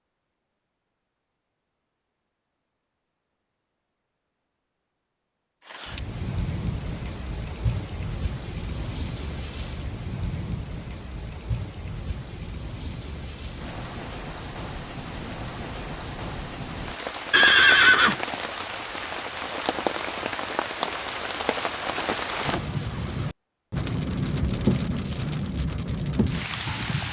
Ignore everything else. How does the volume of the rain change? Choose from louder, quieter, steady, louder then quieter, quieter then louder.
louder.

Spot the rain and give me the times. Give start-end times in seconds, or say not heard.
5.7-27.0.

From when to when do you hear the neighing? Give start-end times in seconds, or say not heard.
17.3-18.2.